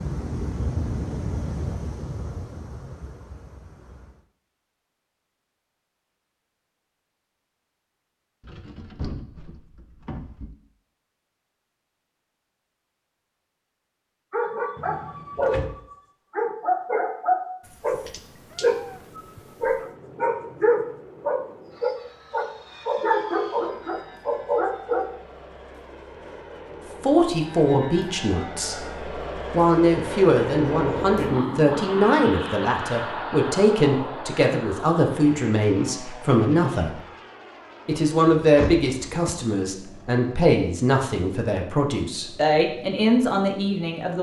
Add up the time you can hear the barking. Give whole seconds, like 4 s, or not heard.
11 s.